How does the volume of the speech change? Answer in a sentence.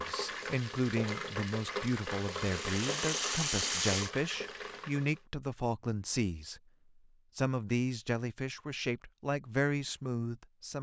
The loudness of the speech stays about the same.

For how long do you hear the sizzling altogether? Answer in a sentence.
The sizzling can be heard for 5 seconds in total.